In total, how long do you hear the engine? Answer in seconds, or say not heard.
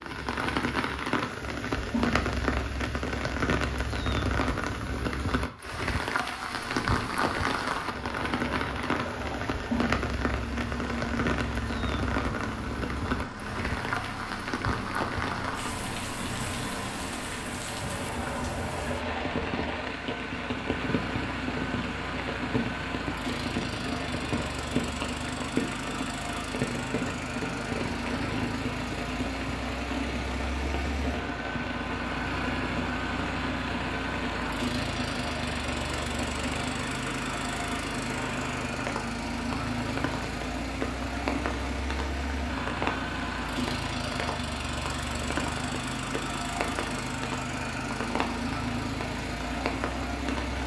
44 s.